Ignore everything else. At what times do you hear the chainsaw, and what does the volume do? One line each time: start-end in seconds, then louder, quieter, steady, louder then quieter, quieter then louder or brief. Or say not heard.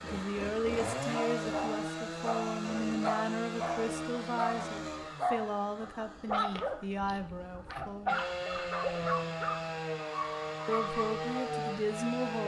0.0-12.4 quieter then louder.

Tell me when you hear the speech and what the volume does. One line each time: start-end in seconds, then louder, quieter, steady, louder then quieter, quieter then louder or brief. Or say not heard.
0.0-8.2 steady
10.7-12.4 brief.